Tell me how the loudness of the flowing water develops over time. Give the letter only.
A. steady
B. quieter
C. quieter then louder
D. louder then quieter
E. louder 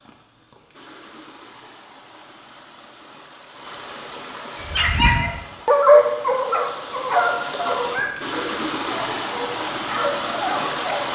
E.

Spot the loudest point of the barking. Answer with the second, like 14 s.
6 s.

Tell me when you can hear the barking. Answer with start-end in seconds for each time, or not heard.
4.5-11.0.